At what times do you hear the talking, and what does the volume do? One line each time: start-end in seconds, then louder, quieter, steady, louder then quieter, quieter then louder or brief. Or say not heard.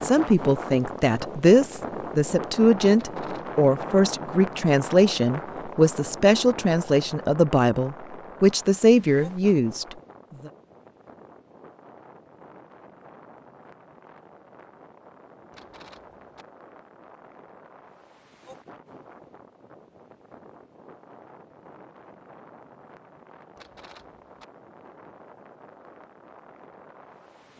0.0-10.5 steady.